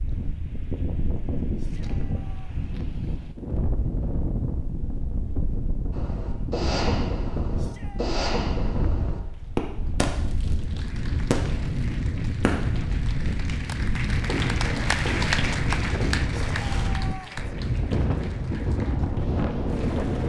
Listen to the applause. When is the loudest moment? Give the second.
15 s.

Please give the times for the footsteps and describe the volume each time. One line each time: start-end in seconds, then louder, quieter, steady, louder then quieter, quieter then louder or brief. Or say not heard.
not heard.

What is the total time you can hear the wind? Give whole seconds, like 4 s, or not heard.
20 s.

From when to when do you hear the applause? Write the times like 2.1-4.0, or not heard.
9.3-20.2.